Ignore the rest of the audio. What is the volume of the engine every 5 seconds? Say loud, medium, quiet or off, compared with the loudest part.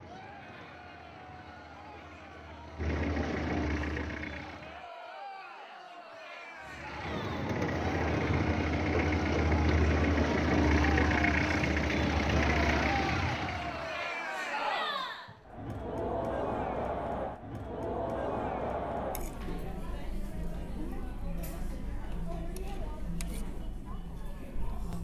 medium, loud, loud, off, off.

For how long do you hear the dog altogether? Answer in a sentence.
You can't hear the dog here.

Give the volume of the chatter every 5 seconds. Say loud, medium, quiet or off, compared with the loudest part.
quiet, medium, loud, loud, medium.